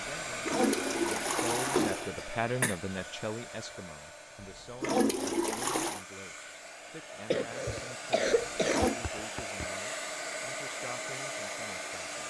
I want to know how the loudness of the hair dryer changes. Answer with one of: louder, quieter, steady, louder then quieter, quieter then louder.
quieter then louder.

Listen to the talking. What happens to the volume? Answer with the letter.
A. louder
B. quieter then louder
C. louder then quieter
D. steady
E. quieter
E.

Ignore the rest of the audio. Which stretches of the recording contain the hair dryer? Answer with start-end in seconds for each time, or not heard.
0.0-12.2.